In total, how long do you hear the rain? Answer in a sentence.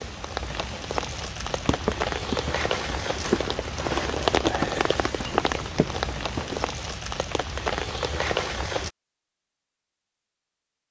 You can hear the rain for 9 seconds altogether.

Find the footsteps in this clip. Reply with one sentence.
The footsteps can be heard from 1.4 to 6.7 s.